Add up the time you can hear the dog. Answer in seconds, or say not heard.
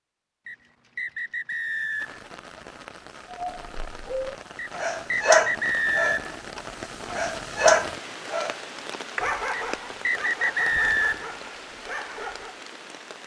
9 s.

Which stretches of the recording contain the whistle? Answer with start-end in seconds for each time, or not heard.
0.5-2.2, 4.5-6.3, 9.5-11.3.